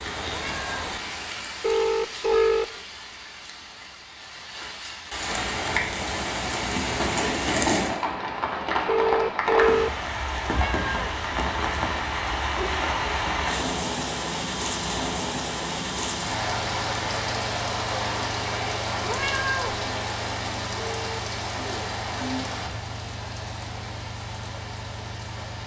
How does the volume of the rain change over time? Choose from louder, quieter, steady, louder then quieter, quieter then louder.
louder then quieter.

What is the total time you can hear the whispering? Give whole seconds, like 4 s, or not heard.
not heard.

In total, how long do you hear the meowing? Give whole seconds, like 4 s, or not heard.
2 s.